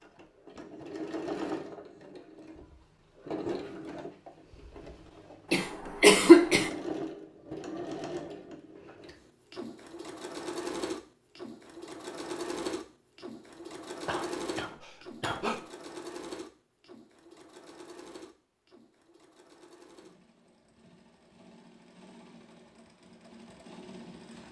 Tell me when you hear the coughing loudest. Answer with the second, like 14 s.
6 s.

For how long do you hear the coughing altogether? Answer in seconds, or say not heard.
3 s.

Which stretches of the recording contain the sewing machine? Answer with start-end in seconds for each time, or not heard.
0.0-24.4.